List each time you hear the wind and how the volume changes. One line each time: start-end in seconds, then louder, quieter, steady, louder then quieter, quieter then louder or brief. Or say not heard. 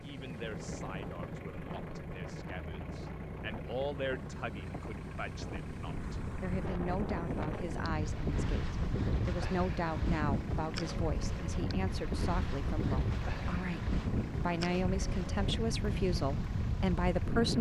0.0-17.5 louder.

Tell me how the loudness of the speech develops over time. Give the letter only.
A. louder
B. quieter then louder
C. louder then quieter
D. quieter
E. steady
A.